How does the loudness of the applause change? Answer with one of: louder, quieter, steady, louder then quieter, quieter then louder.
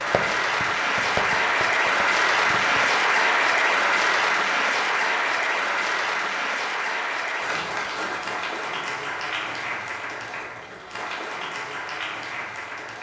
quieter.